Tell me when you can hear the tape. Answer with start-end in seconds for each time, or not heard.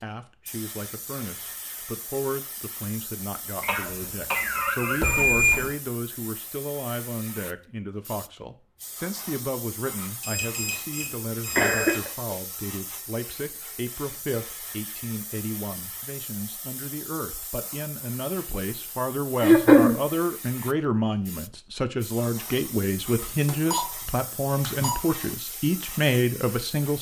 not heard.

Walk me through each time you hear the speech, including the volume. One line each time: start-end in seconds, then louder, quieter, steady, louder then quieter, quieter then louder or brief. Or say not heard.
0.0-26.9 louder.